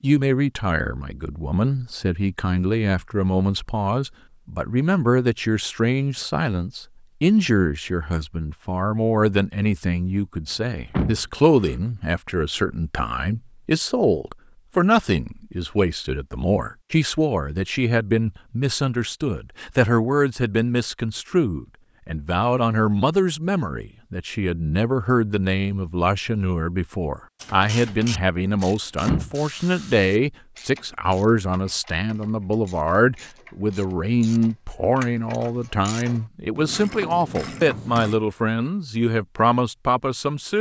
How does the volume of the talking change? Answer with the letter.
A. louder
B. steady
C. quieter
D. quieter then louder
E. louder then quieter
B.